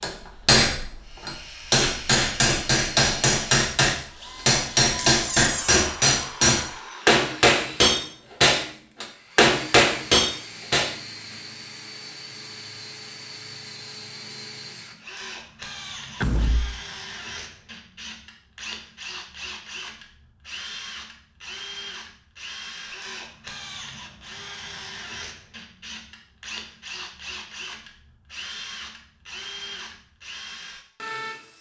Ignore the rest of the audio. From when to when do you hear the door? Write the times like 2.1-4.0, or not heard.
5.0-5.8, 16.2-16.8.